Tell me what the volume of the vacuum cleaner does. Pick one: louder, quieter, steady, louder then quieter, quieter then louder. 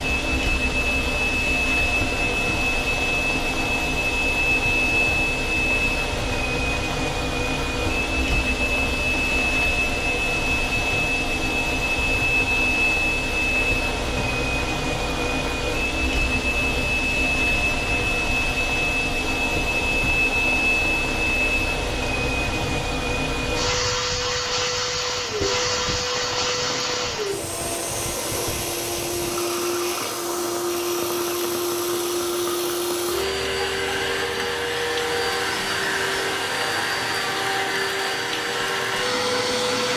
steady.